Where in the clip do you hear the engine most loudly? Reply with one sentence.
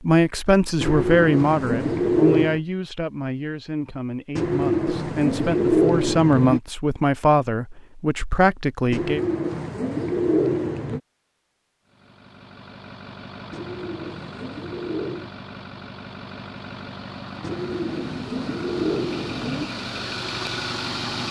The volume of the engine peaks at 21 seconds.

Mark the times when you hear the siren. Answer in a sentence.
The siren can't be heard in this clip.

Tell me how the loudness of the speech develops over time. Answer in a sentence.
The volume of the speech goes down, then up.